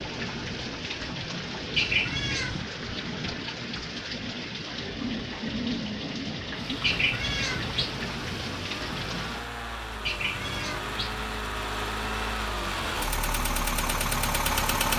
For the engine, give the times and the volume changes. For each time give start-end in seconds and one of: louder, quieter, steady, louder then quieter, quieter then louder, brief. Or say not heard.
6.5-14.9 louder.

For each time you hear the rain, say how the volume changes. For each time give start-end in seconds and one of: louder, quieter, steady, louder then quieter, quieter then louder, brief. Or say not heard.
0.0-9.5 steady.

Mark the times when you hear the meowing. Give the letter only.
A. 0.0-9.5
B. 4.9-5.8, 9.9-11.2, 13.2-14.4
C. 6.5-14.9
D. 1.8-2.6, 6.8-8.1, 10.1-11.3
D.